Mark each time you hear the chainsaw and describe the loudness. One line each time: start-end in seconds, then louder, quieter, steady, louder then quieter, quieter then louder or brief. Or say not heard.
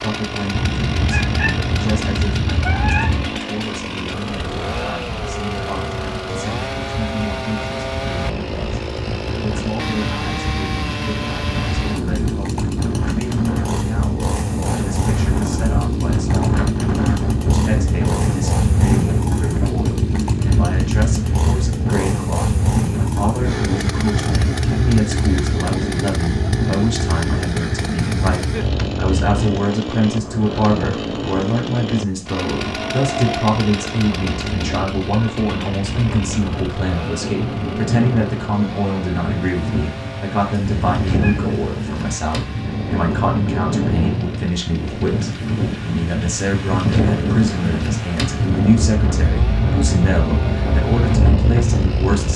0.0-52.3 quieter.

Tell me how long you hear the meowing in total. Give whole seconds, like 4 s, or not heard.
4 s.